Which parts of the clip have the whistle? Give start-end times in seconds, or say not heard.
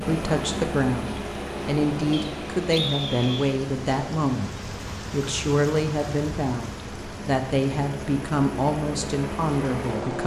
2.1-3.5.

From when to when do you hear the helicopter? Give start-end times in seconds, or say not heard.
0.0-10.2.